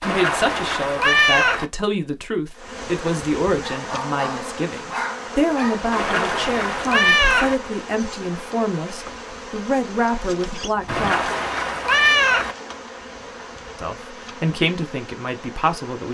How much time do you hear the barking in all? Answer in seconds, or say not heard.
2 s.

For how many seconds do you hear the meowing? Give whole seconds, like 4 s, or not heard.
5 s.